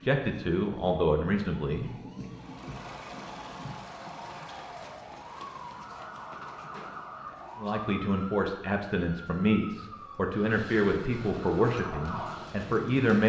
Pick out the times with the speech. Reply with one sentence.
You can hear the speech from 0.1 to 1.9 s and from 7.5 to 13.2 s.